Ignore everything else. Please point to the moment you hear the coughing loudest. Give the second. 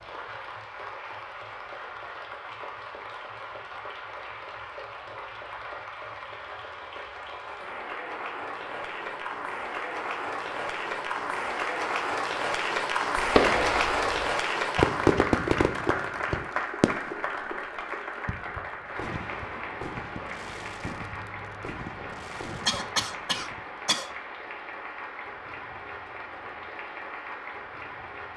23 s.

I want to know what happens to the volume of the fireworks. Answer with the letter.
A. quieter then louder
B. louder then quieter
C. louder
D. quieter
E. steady
D.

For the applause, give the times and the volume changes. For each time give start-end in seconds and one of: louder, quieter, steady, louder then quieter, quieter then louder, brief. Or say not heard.
0.0-28.3 louder then quieter.